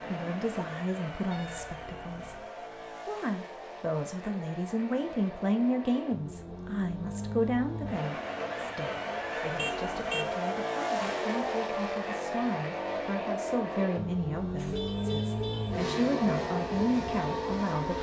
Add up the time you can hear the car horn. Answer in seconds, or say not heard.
3 s.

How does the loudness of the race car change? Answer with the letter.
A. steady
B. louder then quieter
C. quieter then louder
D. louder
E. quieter
D.